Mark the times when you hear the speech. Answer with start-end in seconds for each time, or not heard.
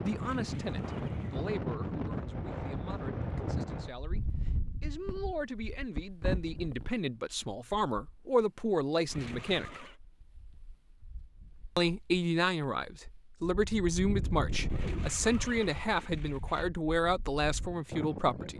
0.0-9.8, 11.8-18.5.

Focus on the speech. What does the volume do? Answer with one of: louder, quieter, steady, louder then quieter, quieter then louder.
louder.